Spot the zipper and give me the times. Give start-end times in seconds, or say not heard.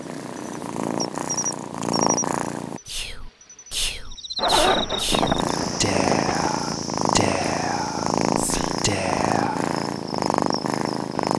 4.3-6.5.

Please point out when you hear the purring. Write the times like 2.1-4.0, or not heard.
0.0-2.8, 5.1-11.3.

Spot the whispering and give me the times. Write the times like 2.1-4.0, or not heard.
2.9-9.7.